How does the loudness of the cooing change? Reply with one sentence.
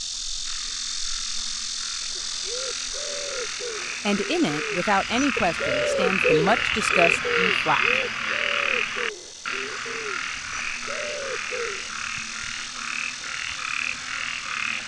The volume of the cooing goes up, then down.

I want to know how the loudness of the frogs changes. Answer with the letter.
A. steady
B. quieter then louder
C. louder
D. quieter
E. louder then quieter
E.